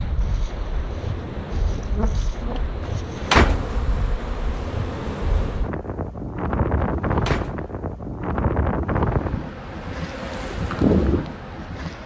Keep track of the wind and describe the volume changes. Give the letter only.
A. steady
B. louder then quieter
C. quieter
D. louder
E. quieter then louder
D.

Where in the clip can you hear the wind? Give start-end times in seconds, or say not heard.
0.0-12.0.